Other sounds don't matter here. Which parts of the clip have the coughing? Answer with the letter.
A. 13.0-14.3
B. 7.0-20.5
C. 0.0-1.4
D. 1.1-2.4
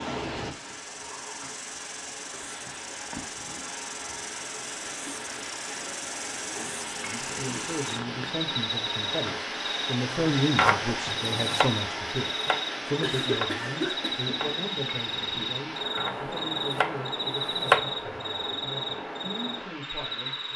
A.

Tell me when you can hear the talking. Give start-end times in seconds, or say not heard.
7.0-20.5.